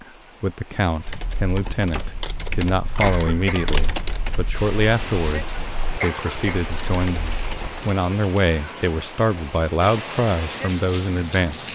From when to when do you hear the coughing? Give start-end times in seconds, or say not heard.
3.0-3.8, 6.0-6.6.